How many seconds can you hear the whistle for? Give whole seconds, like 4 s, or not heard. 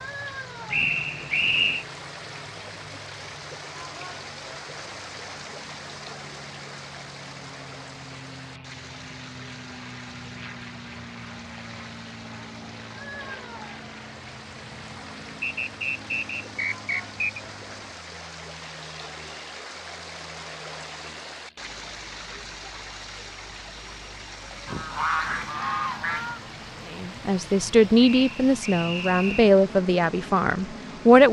5 s.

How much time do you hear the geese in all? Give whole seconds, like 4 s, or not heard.
2 s.